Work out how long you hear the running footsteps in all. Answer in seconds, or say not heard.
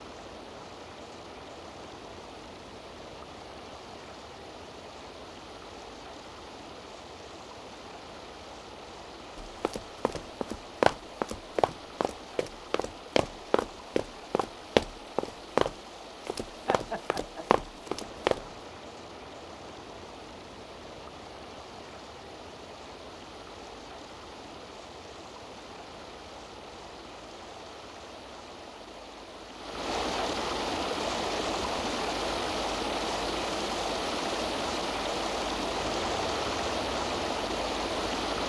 9 s.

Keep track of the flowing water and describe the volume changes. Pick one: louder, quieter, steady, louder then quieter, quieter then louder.
louder.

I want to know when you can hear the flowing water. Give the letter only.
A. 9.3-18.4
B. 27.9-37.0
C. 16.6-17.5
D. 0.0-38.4
D.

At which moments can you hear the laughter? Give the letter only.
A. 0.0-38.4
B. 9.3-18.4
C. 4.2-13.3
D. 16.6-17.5
D.